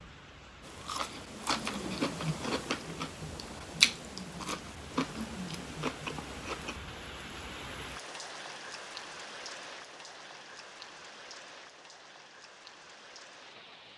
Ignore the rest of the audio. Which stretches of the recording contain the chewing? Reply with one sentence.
The chewing can be heard from 0.6 to 6.8 s.